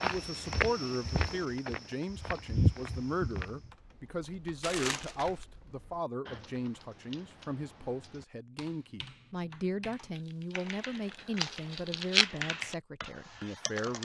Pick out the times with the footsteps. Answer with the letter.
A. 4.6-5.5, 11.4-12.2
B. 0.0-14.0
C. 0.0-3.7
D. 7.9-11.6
C.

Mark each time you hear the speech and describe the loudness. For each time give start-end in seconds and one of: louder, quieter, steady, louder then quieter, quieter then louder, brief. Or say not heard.
0.0-14.0 steady.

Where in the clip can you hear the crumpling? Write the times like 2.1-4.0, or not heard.
4.6-5.5, 11.4-12.2.